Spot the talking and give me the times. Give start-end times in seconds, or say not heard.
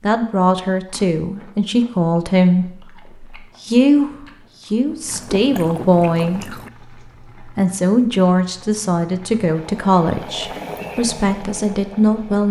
0.0-6.5, 7.4-12.4.